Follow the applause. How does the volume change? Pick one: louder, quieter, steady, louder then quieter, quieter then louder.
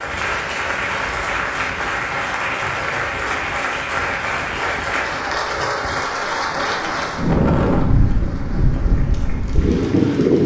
quieter.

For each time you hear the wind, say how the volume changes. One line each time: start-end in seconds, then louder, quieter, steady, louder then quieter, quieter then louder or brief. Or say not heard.
0.0-10.4 louder.